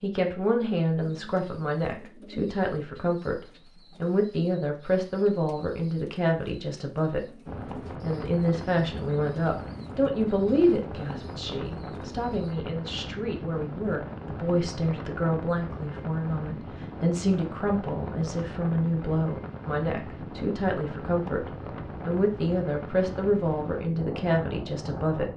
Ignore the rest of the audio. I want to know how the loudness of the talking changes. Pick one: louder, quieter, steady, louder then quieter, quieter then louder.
steady.